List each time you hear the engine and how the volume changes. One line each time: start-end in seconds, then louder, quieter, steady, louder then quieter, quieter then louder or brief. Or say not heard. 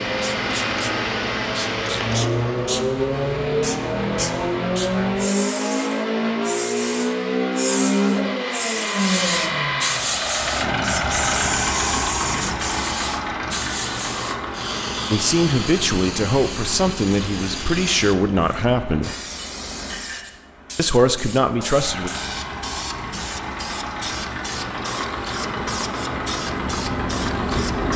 0.0-27.9 quieter then louder.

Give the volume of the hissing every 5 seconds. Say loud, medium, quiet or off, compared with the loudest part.
medium, loud, loud, medium, medium, medium.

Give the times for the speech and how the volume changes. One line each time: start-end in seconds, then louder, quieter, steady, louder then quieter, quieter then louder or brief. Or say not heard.
15.1-19.1 steady
20.8-22.1 brief.